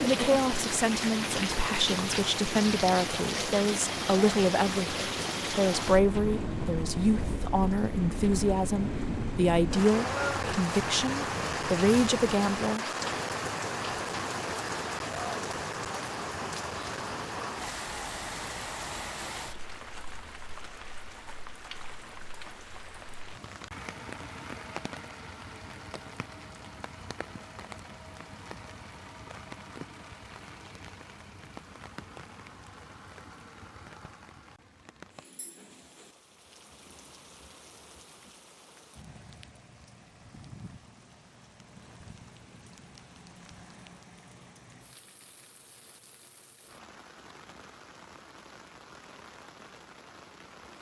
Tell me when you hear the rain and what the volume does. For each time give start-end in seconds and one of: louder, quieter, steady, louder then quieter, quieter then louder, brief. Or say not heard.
0.0-50.7 quieter.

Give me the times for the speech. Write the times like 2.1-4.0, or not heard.
0.0-12.8.